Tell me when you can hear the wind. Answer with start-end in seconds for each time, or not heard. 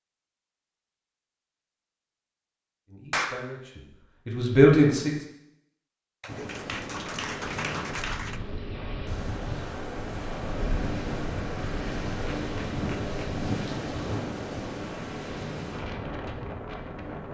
6.2-17.2.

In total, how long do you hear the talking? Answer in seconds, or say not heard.
2 s.